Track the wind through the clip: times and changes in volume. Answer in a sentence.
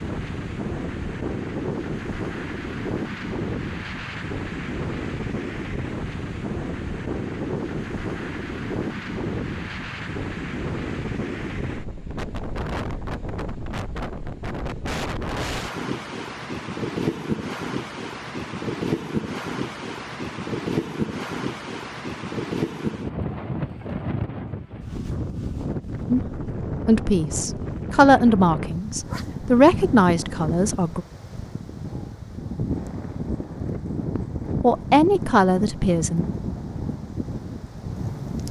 The wind can be heard from 0.0 to 38.4 s, at a steady volume.